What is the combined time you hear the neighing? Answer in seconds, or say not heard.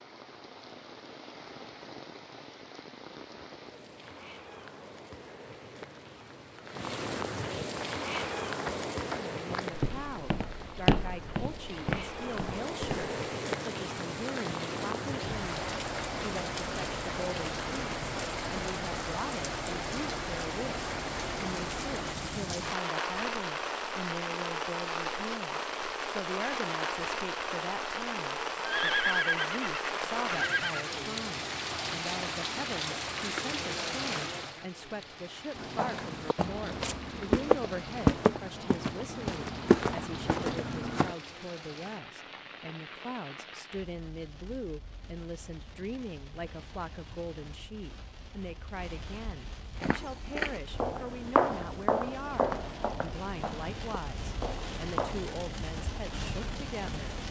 2 s.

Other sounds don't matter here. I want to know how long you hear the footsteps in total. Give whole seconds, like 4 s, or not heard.
17 s.